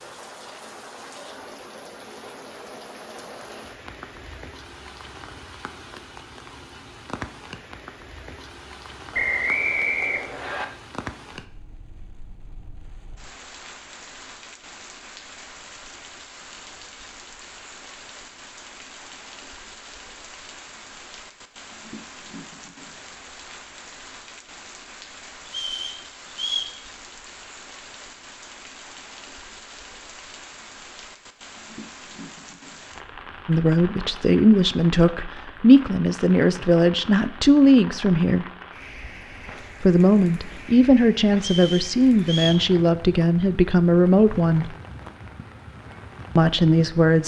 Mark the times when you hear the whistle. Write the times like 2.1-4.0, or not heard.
9.1-10.7, 25.4-26.8, 41.4-42.6.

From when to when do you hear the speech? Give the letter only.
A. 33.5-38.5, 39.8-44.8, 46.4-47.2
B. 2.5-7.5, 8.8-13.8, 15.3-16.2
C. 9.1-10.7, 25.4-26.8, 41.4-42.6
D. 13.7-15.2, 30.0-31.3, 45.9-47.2
A.